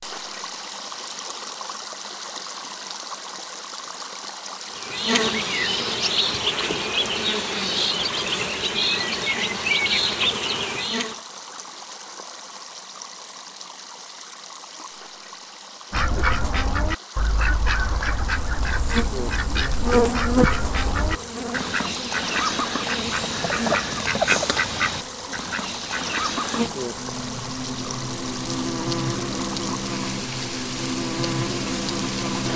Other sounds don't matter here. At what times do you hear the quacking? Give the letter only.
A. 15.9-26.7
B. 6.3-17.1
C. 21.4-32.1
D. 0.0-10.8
A.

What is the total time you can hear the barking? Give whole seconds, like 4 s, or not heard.
not heard.